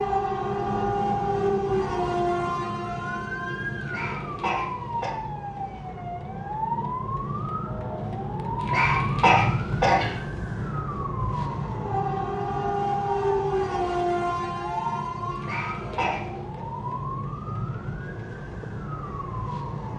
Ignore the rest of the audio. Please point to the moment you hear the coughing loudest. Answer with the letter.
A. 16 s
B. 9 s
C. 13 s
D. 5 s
B.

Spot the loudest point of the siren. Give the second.
9 s.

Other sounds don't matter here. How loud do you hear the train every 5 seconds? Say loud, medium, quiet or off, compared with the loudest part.
loud, quiet, loud, quiet.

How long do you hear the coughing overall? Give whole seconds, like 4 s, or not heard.
4 s.